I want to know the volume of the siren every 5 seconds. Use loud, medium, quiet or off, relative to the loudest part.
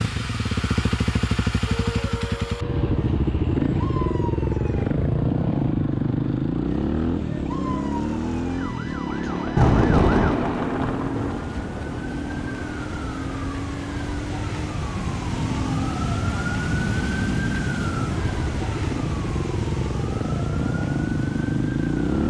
medium, medium, medium, loud, medium.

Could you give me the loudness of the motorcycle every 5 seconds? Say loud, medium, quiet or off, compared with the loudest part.
loud, loud, medium, medium, loud.